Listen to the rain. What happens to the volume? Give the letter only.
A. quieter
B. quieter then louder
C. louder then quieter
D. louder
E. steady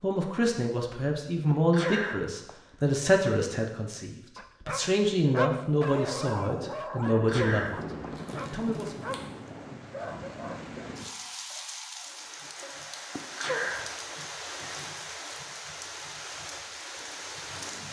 E.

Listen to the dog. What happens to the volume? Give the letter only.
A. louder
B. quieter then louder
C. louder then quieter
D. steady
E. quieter
E.